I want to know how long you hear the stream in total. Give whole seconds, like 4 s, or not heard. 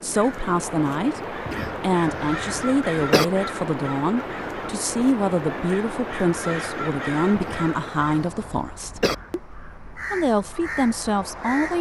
12 s.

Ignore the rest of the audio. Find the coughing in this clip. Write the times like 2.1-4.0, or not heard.
1.4-3.2, 7.3-9.2.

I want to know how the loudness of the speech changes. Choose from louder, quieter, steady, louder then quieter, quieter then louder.
steady.